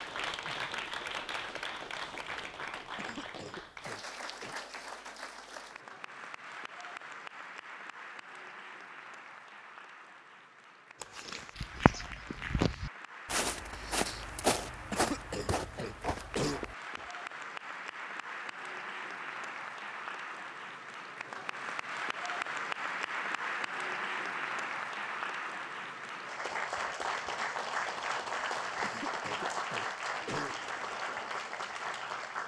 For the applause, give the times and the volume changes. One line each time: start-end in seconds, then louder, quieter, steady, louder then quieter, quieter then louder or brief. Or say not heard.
0.0-32.4 quieter then louder.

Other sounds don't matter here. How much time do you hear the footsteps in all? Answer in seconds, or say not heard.
6 s.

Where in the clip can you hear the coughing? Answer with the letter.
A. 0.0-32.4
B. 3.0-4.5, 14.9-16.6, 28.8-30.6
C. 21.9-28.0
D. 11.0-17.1
B.